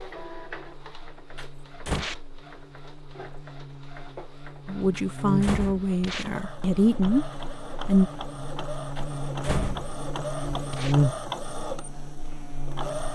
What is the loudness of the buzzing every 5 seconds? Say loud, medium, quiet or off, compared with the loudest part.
quiet, medium, loud.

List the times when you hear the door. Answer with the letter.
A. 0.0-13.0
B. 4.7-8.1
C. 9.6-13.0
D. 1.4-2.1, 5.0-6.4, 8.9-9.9
D.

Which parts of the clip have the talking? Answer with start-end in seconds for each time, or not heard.
4.7-8.1.